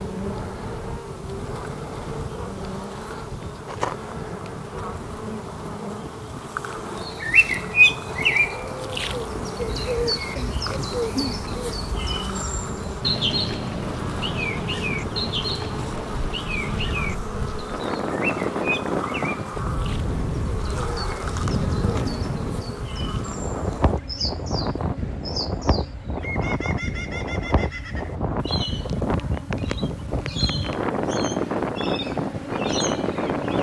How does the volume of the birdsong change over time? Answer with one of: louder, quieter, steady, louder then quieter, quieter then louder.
quieter.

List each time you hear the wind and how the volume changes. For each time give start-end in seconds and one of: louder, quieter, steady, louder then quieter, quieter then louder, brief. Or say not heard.
0.0-33.5 louder.